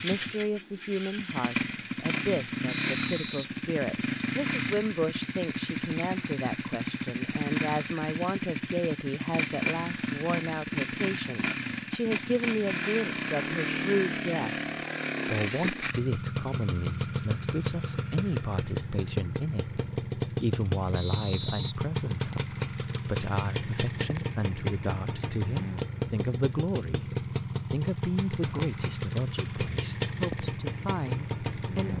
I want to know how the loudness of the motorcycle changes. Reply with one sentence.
The volume of the motorcycle stays about the same.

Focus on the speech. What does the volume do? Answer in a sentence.
The volume of the speech stays about the same.